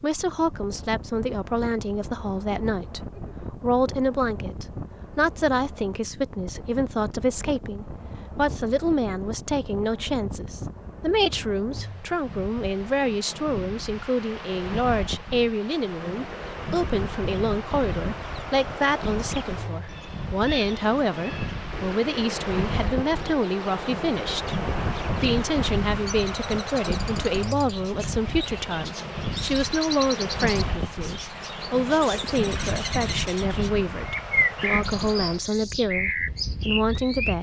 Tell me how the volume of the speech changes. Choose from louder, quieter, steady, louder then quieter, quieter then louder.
steady.